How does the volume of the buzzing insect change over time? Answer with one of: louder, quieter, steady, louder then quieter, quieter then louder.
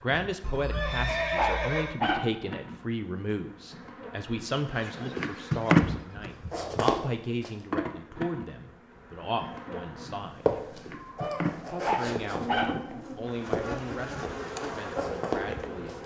louder then quieter.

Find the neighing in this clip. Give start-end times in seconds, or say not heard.
0.4-1.9.